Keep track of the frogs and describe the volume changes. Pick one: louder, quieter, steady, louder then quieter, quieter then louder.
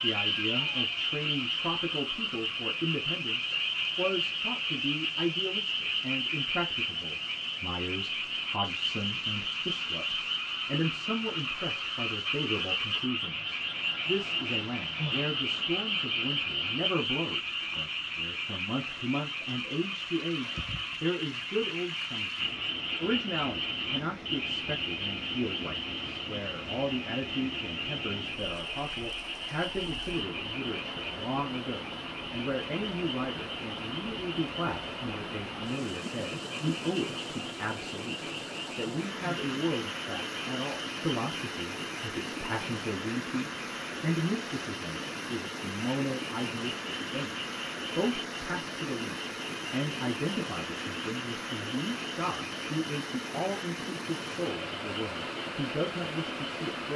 quieter.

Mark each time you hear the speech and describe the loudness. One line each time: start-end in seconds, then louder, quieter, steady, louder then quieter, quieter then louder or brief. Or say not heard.
0.0-47.4 steady
48.0-56.9 steady.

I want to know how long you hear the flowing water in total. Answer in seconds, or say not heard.
57 s.